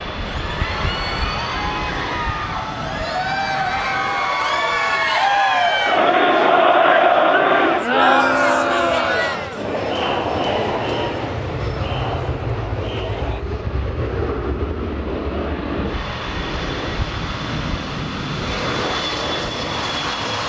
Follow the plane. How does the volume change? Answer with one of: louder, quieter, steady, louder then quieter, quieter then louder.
quieter then louder.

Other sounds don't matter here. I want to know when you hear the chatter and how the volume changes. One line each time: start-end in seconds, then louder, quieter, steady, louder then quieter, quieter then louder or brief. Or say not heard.
0.3-13.4 louder then quieter.